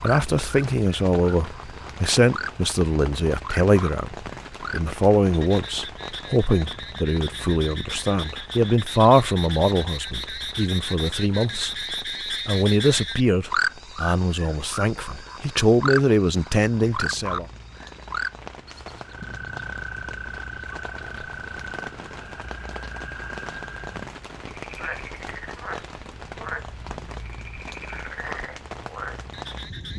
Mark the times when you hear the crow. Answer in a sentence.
The crow can't be heard in this clip.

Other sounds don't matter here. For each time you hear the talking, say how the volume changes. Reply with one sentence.
You can hear the talking from 0.0 to 17.4 s, at a steady volume.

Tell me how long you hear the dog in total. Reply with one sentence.
The dog can't be heard in this clip.